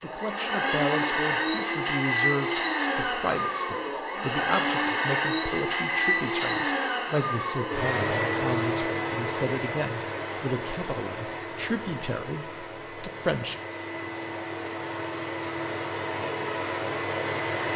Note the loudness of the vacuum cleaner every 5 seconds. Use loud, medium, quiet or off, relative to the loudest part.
loud, loud, medium, loud.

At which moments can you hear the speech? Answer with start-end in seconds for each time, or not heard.
0.0-13.6.